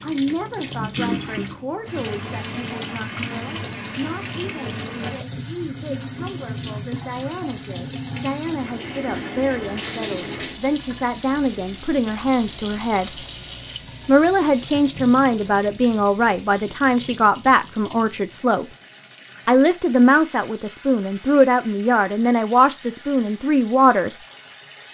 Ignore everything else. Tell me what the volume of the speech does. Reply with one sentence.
The loudness of the speech goes up.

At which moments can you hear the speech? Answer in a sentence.
The speech can be heard from 0.0 to 13.2 s, from 14.1 to 18.6 s and from 19.4 to 24.2 s.